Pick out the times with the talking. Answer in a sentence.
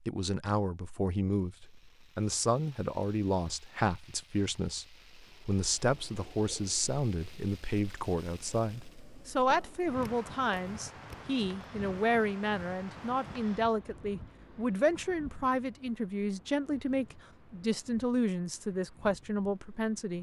The talking can be heard from 0.1 to 20.1 s.